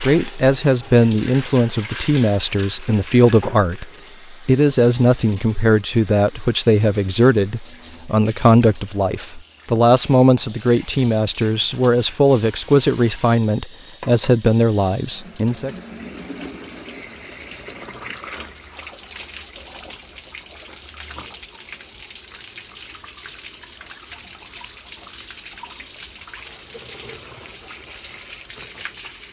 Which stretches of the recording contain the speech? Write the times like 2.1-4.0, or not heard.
0.0-15.8.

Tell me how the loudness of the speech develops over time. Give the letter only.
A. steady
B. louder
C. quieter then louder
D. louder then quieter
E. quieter
A.